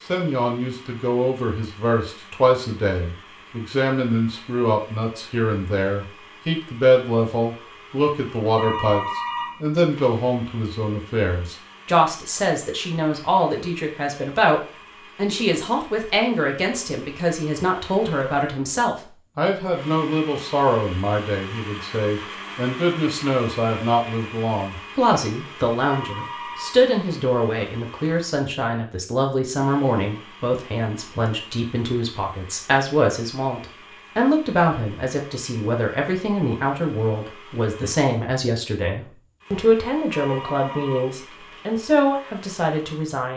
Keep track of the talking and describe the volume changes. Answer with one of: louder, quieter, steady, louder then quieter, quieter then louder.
steady.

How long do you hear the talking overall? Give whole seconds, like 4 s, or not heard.
43 s.